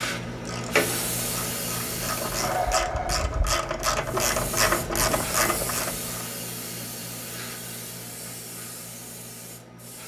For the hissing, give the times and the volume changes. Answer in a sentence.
You can hear the hissing briefly from 0.0 to 2.8 s; and from 4.0 to 10.0 s, getting quieter.